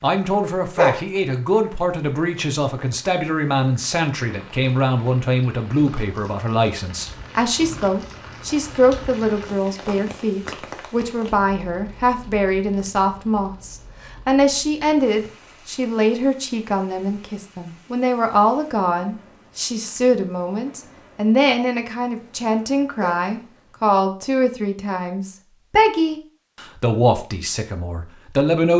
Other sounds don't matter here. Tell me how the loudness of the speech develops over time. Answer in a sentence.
The loudness of the speech stays about the same.